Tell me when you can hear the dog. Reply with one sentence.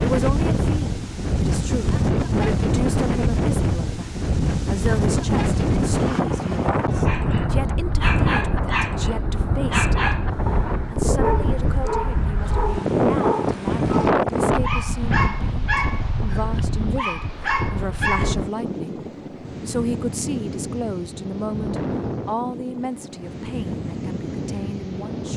The dog can be heard from 7.0 to 18.4 s.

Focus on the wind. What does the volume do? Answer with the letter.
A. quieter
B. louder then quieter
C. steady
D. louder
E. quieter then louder
A.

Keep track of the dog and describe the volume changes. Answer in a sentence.
The loudness of the dog stays about the same.